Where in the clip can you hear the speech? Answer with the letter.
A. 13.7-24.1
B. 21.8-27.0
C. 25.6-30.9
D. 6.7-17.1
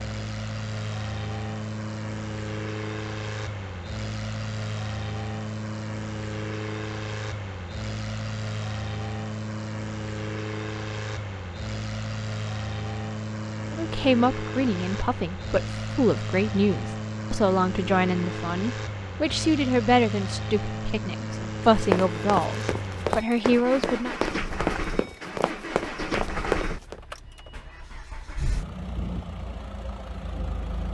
A.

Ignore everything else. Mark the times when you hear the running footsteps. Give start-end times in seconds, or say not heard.
21.8-27.0.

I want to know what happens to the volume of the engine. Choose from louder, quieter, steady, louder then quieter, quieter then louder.
steady.